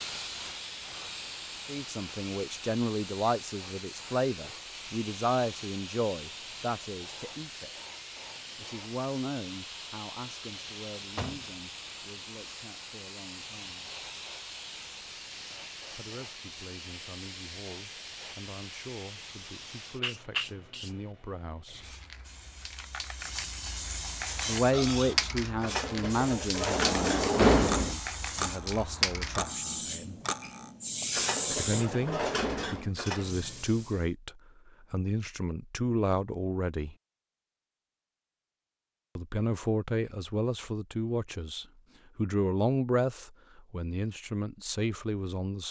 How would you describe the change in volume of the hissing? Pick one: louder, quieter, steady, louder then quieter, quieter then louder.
louder.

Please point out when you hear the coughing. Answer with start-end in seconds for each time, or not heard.
not heard.